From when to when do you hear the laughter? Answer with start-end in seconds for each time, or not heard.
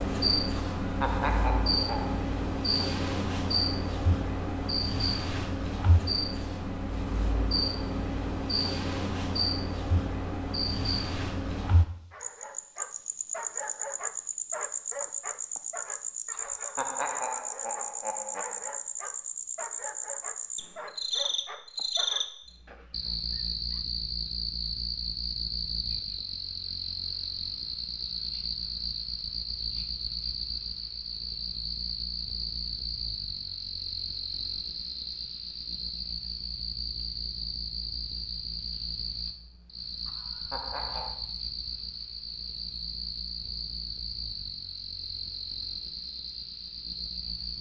0.8-2.2, 16.3-18.7, 40.0-41.2.